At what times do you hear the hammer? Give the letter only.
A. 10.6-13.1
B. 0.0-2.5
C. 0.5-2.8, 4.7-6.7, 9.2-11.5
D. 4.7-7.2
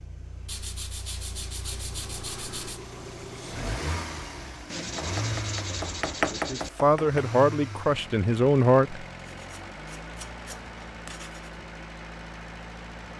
D.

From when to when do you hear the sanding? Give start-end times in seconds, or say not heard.
0.5-2.8, 4.7-6.7, 9.2-11.5.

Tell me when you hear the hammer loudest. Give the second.
6 s.